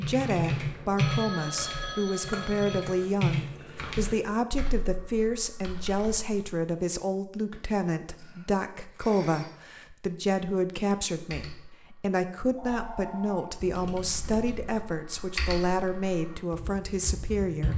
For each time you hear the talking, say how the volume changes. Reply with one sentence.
You can hear the talking from 0.0 to 17.7 s, at a steady volume.